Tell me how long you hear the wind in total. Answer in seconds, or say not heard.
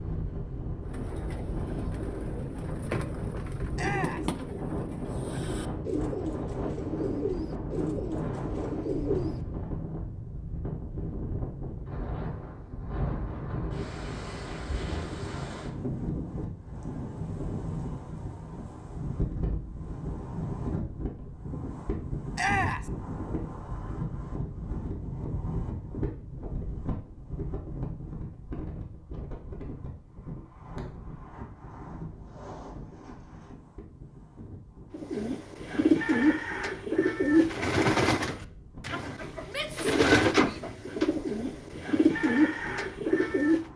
44 s.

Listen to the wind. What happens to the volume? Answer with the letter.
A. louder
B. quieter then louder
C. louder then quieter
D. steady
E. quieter
E.